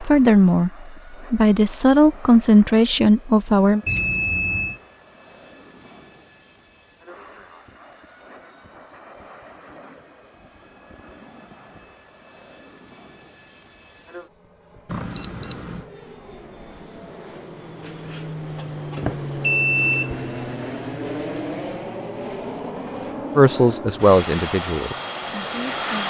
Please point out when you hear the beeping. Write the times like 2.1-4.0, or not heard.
3.9-4.8, 14.9-15.8, 17.9-20.1.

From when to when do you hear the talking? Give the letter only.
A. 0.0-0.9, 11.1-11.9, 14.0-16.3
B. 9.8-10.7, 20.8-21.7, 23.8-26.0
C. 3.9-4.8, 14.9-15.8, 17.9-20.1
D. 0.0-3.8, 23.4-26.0
D.